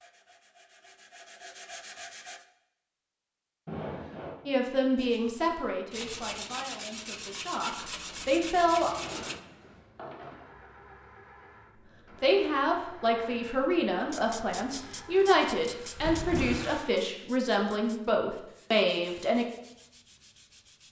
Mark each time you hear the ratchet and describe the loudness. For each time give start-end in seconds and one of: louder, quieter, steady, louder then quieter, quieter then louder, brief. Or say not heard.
not heard.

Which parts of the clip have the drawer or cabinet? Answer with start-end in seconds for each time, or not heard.
3.6-4.4, 8.8-10.5, 15.9-16.7.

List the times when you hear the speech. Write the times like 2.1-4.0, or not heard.
4.5-8.9, 12.2-19.4.